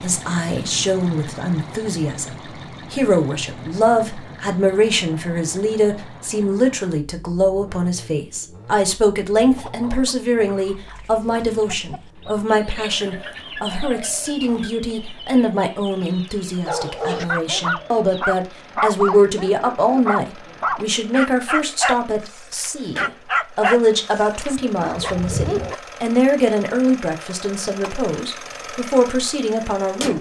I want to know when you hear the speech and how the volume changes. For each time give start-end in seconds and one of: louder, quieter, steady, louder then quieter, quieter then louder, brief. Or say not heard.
0.0-30.1 steady.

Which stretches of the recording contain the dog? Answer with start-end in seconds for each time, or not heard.
16.6-25.8.